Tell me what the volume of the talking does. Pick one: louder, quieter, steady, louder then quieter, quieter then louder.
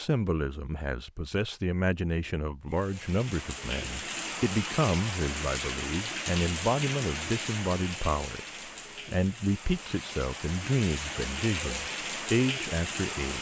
steady.